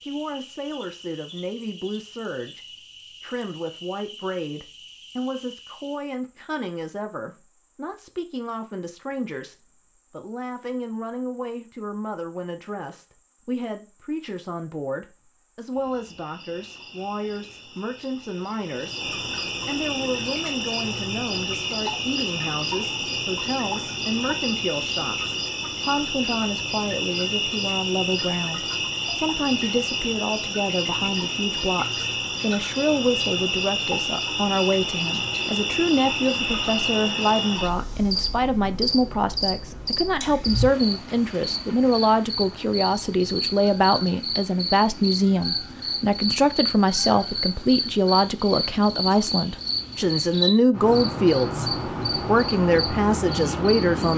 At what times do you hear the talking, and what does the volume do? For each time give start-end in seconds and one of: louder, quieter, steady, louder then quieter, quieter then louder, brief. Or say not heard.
0.0-54.1 louder.